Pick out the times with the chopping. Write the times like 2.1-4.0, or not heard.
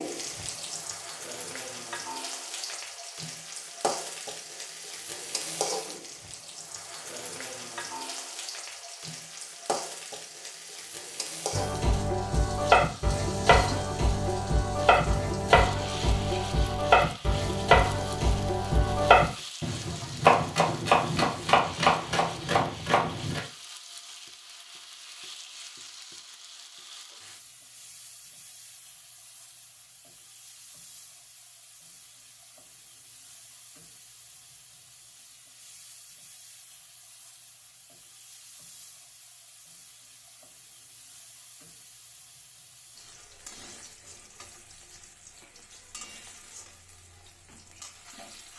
11.5-23.4.